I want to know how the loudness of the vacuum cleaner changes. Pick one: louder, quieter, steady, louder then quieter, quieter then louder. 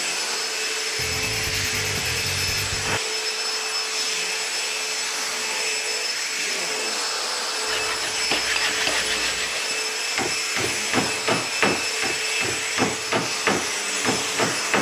steady.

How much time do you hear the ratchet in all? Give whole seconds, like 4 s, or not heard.
not heard.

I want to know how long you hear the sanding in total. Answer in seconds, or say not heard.
4 s.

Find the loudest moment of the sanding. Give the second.
9 s.